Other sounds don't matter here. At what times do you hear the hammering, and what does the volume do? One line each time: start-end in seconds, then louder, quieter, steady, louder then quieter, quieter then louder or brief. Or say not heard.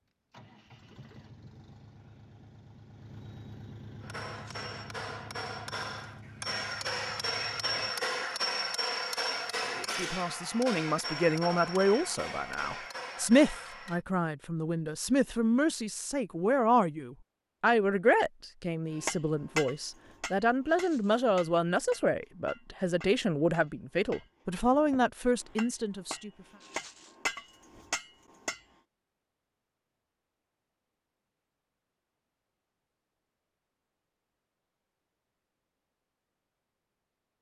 4.0-14.0 louder then quieter
18.9-28.6 quieter then louder.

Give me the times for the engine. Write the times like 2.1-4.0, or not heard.
0.3-8.0.